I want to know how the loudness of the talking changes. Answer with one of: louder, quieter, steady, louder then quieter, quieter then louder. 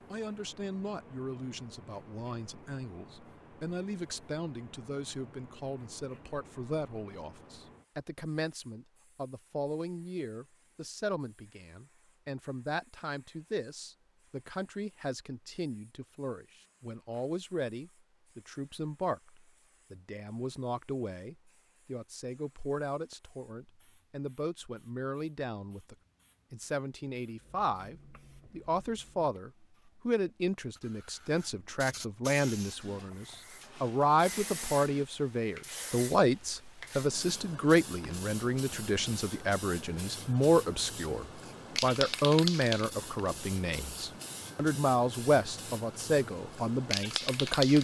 louder.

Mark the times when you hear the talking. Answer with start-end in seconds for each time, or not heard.
0.1-47.8.